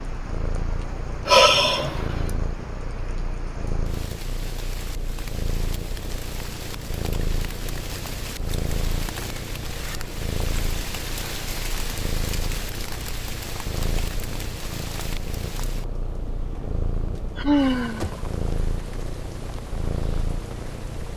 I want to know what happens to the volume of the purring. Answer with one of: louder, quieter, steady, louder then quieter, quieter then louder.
steady.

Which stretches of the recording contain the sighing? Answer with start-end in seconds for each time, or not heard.
1.2-2.0, 17.4-18.2.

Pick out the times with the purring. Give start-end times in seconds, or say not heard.
0.0-21.1.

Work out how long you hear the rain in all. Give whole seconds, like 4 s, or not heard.
21 s.